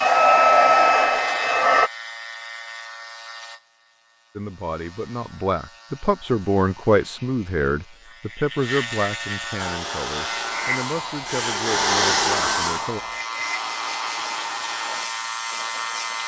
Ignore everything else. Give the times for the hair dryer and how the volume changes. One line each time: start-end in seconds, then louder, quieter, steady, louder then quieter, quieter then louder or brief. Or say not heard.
0.0-1.9 brief
9.6-16.2 louder then quieter.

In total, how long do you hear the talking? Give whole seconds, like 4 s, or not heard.
9 s.